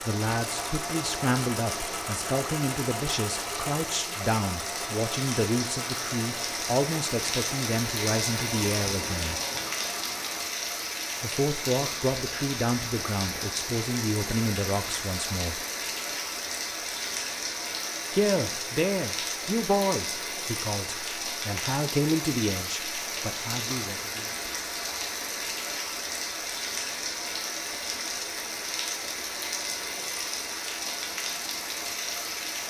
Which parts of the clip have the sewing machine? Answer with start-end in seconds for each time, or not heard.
0.0-10.7.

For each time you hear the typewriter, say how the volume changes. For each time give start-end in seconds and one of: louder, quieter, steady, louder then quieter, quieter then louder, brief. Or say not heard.
not heard.